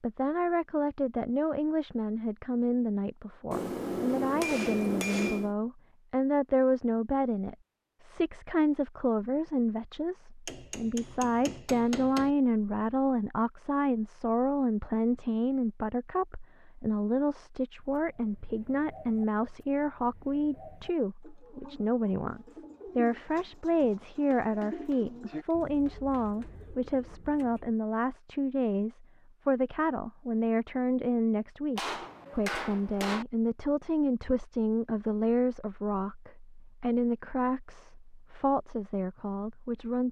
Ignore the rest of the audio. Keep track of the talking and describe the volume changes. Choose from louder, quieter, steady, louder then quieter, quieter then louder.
steady.